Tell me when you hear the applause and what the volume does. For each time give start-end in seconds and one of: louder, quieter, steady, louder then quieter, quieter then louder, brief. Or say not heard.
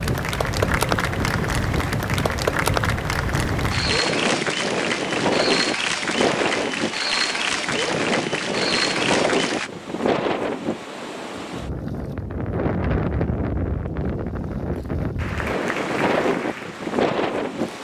0.0-9.7 steady
15.2-17.7 brief.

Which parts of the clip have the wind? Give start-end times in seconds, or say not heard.
0.0-17.7.